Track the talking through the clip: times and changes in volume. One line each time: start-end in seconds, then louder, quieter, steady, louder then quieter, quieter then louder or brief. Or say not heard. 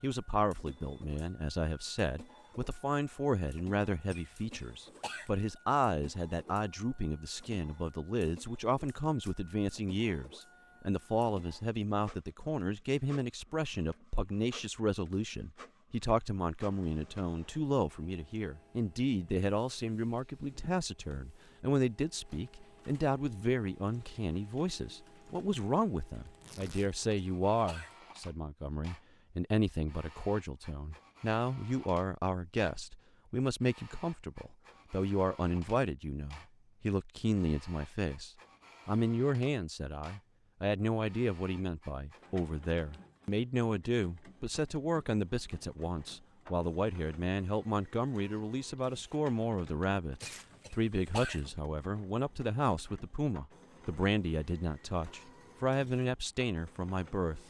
0.0-57.4 steady.